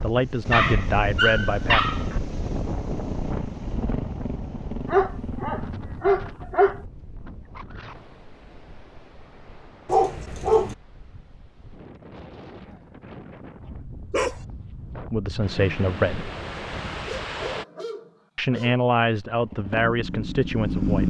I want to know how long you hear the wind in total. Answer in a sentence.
You can hear the wind for 18 seconds altogether.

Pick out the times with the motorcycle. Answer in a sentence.
You can hear the motorcycle from 1.4 to 5.8 s and from 19.2 to 21.0 s.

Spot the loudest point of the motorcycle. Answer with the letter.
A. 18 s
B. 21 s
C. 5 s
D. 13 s
B.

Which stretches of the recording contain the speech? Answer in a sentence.
You can hear the speech from 0.0 to 1.9 s, from 15.1 to 16.3 s and from 18.4 to 21.0 s.